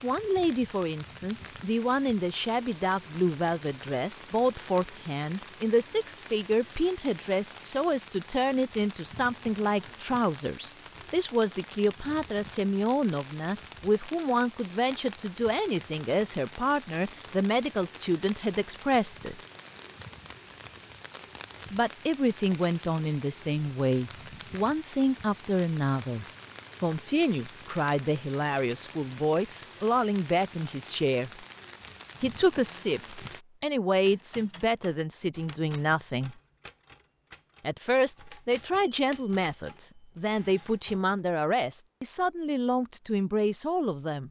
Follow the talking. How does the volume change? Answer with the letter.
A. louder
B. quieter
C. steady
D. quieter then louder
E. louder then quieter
C.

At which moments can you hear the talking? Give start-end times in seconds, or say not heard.
0.0-19.4, 21.7-31.4, 32.2-36.4, 37.6-44.2.